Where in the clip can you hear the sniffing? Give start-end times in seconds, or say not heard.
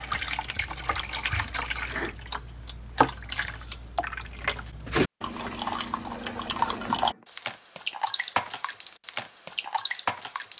1.1-2.1, 6.5-7.2.